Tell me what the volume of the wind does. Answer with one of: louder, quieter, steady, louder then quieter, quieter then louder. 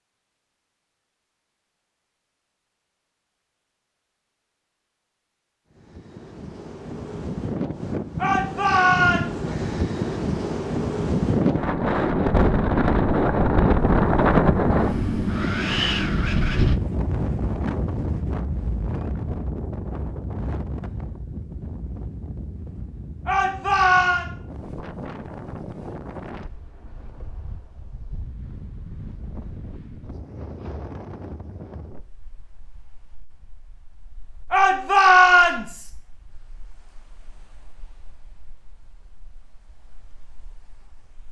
quieter.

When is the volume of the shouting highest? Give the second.
35 s.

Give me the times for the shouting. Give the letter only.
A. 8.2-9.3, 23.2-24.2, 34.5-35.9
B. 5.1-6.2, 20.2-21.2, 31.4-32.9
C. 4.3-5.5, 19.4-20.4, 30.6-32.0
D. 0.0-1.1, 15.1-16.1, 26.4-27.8
A.